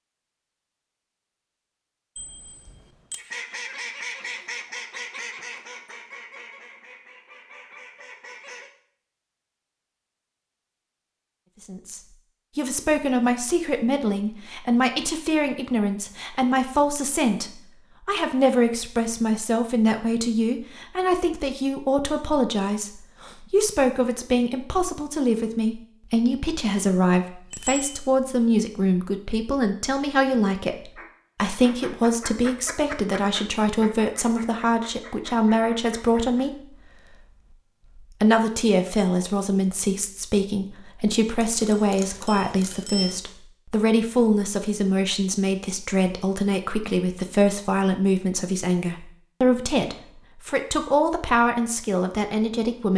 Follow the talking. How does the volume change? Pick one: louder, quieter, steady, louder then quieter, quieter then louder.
steady.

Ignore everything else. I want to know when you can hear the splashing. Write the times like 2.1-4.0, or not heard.
not heard.